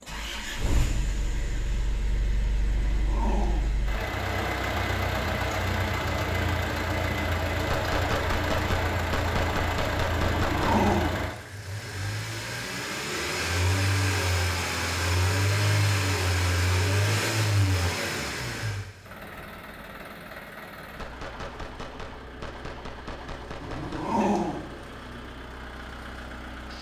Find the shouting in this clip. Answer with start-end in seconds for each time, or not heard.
not heard.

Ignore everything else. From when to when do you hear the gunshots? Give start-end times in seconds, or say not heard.
7.7-10.9, 20.9-24.2.